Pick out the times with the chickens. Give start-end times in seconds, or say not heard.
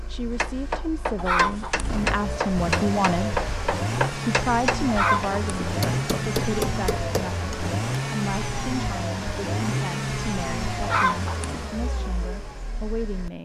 1.1-2.0, 4.8-5.5, 10.8-11.7.